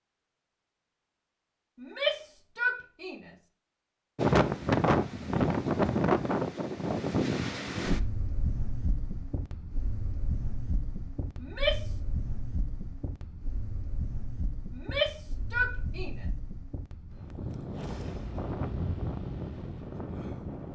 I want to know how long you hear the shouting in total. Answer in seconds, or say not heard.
4 s.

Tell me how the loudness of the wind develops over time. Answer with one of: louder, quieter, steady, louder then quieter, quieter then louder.
quieter then louder.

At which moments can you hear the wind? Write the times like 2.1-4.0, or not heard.
4.2-20.6.